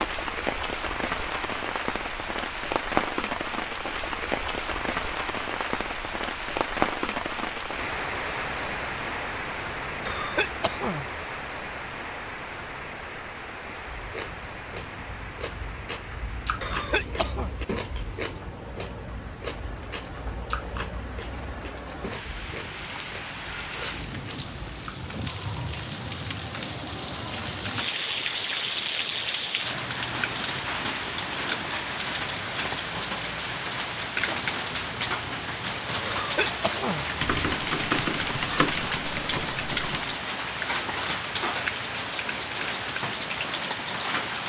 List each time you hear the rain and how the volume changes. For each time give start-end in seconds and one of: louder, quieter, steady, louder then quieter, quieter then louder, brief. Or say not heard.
0.0-44.4 quieter then louder.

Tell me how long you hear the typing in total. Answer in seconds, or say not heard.
3 s.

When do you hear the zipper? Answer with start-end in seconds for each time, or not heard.
not heard.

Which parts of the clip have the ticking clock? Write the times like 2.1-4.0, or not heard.
not heard.